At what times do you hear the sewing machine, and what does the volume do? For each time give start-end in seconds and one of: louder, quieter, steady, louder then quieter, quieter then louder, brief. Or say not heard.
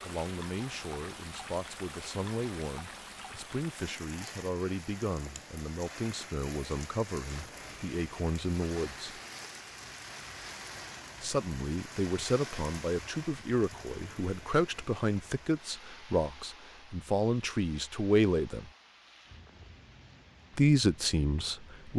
not heard.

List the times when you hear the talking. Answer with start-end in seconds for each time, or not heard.
0.0-9.2, 11.2-18.7, 20.6-21.9.